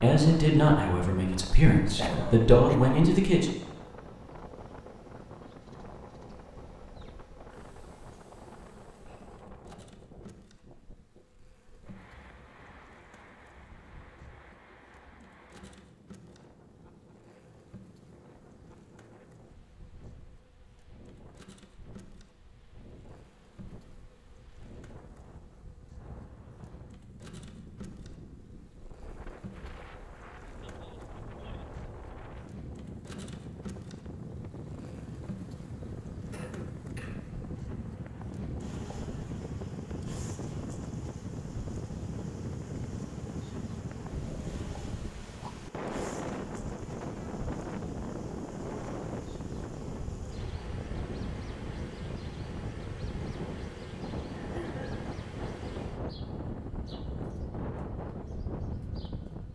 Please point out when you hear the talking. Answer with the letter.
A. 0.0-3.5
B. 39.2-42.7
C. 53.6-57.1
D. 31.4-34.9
A.